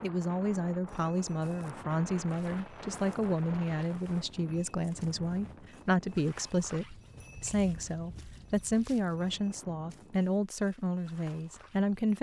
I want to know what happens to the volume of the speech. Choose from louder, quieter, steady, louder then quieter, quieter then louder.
steady.